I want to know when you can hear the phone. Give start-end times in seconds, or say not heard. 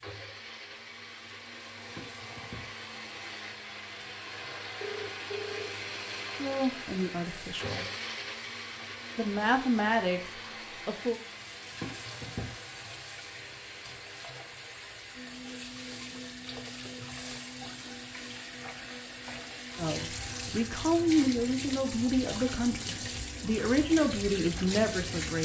4.8-5.8.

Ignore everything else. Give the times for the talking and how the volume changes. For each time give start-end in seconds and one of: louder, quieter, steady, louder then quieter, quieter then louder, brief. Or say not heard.
6.3-7.8 brief
9.2-11.2 brief
19.8-25.3 steady.